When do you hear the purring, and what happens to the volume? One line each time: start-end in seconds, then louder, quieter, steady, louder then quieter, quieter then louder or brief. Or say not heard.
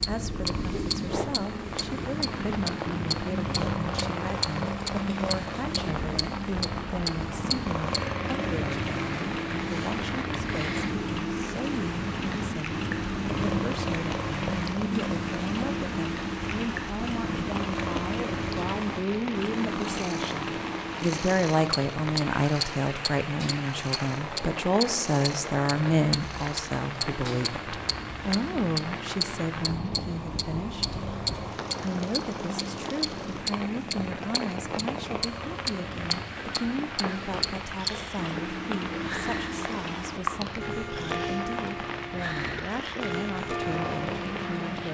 0.0-44.9 quieter.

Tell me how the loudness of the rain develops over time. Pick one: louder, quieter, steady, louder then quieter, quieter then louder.
steady.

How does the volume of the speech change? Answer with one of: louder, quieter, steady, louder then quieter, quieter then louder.
louder then quieter.